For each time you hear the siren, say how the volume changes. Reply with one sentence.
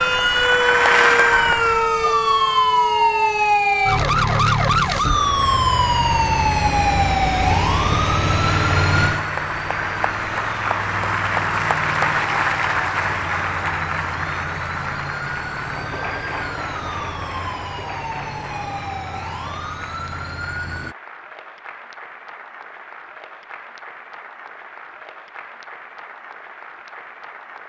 You can hear the siren from 0.0 to 20.9 s, getting quieter.